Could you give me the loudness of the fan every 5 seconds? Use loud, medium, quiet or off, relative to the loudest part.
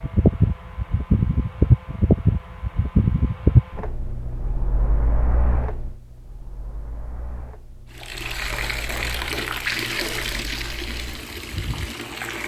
loud, quiet, quiet.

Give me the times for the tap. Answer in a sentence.
The tap can be heard from 7.9 to 12.4 s.